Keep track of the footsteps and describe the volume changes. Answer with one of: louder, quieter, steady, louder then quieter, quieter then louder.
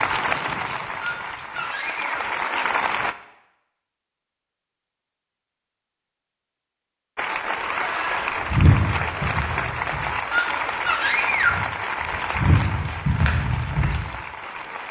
quieter then louder.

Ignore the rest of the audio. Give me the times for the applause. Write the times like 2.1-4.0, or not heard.
0.0-3.1, 7.2-14.8.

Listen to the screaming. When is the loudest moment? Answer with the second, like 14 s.
11 s.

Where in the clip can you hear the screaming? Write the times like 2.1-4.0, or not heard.
1.0-2.2, 7.6-8.3, 10.3-11.7.